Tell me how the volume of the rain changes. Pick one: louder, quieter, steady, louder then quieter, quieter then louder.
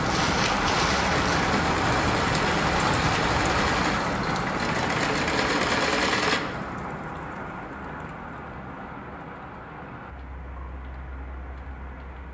quieter.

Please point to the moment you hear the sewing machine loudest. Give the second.
6 s.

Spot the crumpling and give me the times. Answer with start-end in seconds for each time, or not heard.
0.0-1.5.